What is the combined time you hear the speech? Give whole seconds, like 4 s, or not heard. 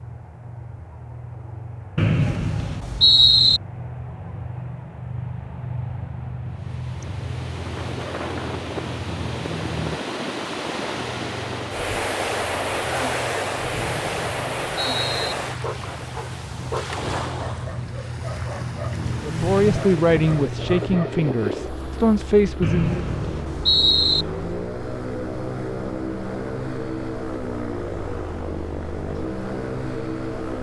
4 s.